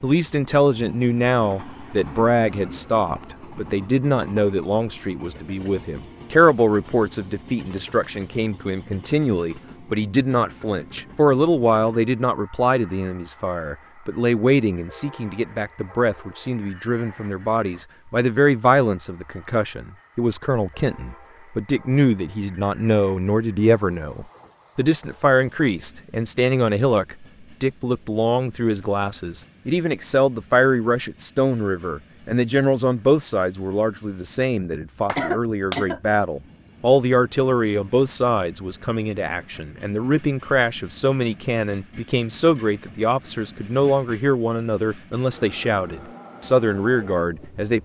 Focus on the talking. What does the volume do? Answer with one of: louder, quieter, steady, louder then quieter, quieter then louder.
steady.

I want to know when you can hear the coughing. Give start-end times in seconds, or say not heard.
35.0-36.0.